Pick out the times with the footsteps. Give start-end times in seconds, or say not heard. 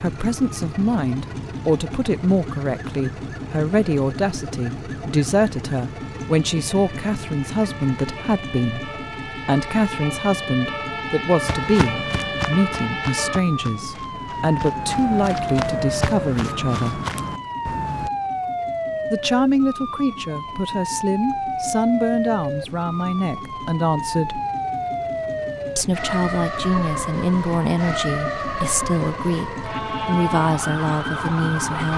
11.4-18.1.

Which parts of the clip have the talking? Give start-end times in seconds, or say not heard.
0.0-17.0, 19.1-24.4, 25.8-31.9.